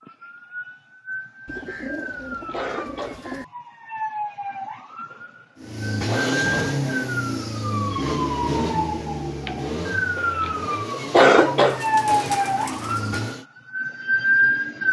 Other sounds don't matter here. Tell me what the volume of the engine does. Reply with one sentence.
The loudness of the engine goes down.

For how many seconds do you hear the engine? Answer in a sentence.
You can hear the engine for 8 seconds altogether.